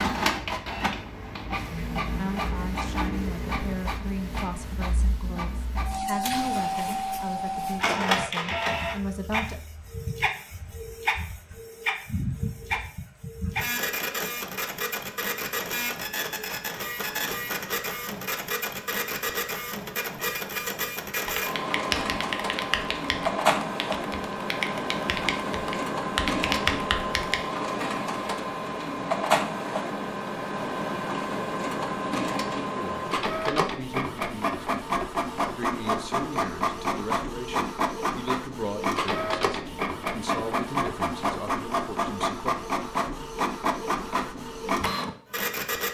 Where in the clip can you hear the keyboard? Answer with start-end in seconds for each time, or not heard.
21.2-27.4.